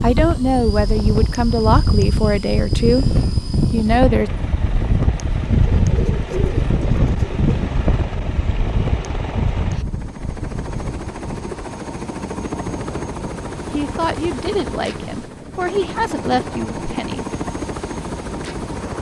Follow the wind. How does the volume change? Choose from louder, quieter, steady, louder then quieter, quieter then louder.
quieter.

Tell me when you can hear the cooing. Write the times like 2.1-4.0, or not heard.
5.7-7.7.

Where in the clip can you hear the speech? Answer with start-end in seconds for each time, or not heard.
0.0-3.0, 3.7-4.3, 13.7-17.2.